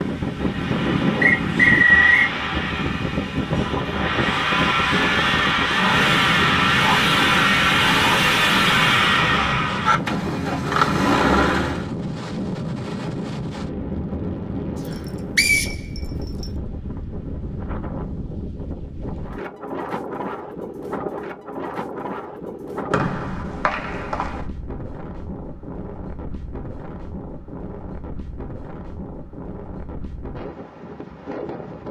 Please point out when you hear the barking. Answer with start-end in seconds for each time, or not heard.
not heard.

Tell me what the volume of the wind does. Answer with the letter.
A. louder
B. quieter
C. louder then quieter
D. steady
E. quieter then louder
B.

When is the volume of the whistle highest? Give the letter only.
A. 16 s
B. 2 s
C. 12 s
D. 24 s
B.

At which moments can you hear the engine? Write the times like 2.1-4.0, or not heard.
0.0-11.8.